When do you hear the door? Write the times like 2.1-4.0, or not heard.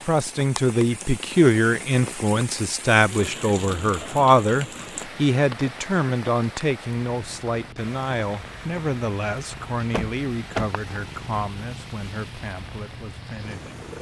9.9-10.7.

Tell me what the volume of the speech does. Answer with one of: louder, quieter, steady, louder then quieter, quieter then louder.
quieter.